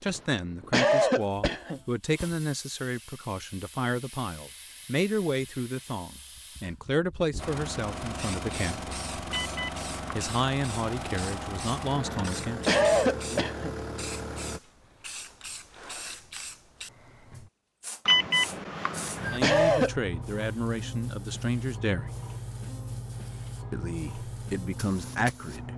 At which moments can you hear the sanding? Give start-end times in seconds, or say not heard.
not heard.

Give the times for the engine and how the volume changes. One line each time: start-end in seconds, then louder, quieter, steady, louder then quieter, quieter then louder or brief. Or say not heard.
7.3-14.6 steady.